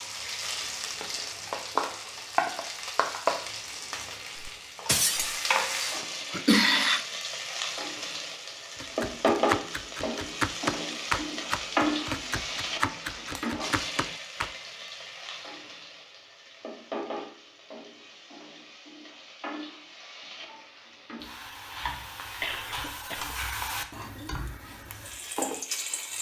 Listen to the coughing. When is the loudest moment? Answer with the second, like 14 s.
7 s.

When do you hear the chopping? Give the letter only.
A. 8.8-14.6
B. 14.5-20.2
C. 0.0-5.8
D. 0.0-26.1
A.